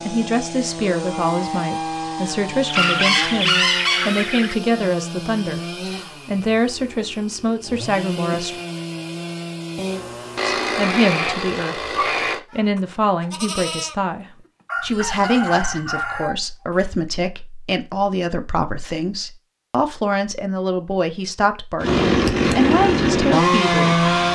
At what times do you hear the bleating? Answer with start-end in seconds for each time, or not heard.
10.8-16.2.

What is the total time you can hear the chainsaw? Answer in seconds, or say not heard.
15 s.